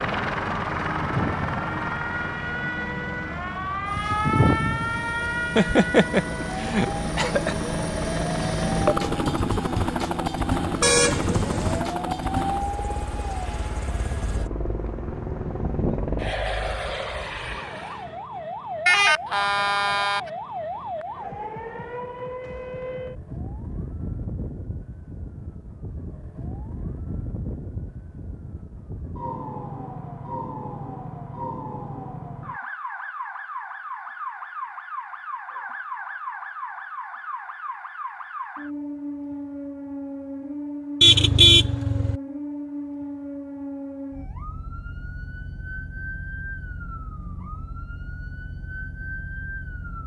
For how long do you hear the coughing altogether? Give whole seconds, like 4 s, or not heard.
2 s.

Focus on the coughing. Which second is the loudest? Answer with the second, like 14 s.
6 s.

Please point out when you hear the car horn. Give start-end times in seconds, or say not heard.
10.8-11.8, 18.9-20.3, 41.0-42.2.